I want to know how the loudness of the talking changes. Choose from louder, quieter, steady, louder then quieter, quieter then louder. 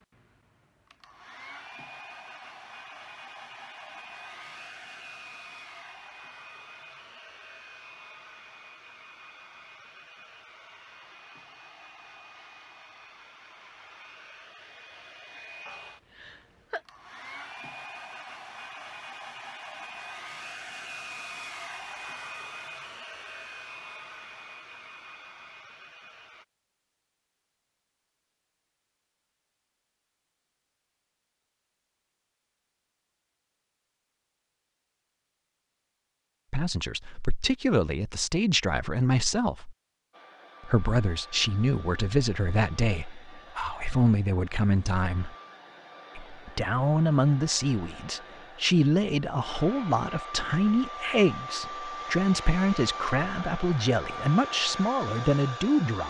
steady.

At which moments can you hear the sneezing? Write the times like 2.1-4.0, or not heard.
15.7-16.8.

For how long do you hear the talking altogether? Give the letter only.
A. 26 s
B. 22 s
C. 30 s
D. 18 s
D.